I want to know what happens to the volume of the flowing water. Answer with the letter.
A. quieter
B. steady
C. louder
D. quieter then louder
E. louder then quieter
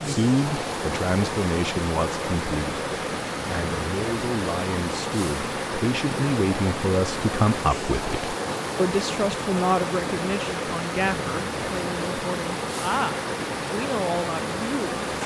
B.